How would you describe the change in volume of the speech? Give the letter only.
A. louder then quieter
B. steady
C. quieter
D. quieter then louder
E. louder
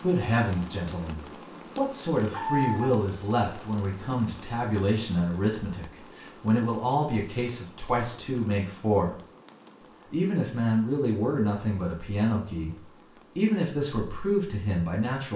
B.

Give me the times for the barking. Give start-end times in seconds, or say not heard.
2.3-3.0.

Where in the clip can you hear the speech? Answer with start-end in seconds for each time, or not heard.
0.0-9.2, 10.1-15.3.